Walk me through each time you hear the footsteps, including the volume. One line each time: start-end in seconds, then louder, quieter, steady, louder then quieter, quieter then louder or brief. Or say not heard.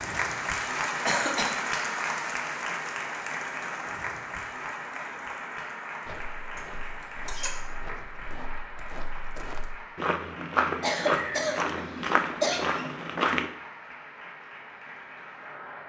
6.0-13.5 louder.